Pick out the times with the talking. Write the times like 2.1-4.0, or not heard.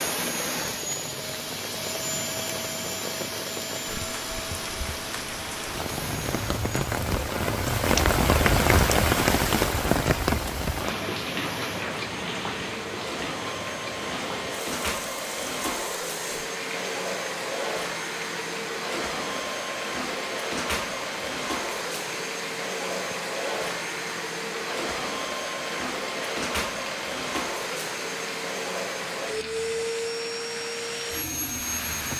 not heard.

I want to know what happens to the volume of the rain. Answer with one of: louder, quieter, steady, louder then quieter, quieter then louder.
louder then quieter.